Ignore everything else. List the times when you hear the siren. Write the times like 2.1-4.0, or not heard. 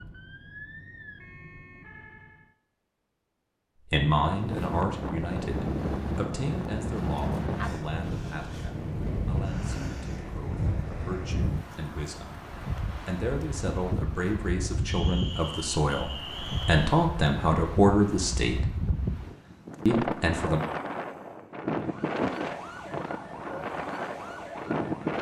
0.0-2.5, 21.7-25.1.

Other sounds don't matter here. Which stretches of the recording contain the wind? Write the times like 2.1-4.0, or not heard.
4.2-25.1.